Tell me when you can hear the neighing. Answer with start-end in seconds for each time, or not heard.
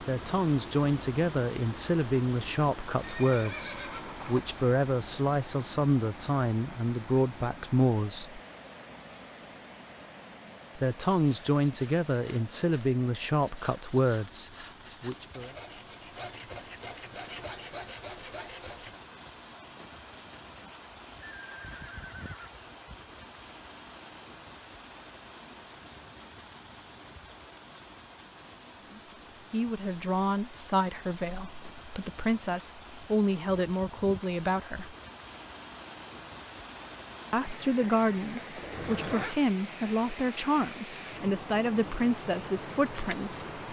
3.0-4.5, 21.4-22.6, 38.6-39.4.